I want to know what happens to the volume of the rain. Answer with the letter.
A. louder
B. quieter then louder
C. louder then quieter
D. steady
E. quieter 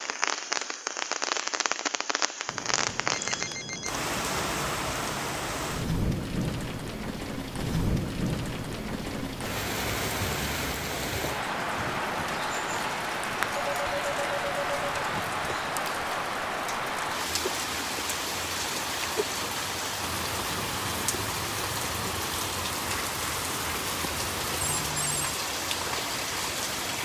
D.